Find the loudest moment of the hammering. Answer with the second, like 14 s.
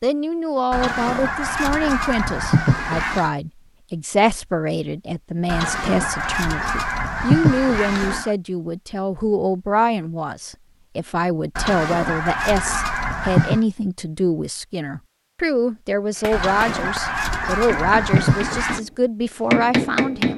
20 s.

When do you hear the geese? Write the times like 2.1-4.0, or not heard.
0.7-3.3, 5.5-8.3, 11.6-13.6, 16.3-18.8.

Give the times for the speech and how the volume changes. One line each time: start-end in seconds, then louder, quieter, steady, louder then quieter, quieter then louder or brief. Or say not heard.
0.0-20.3 steady.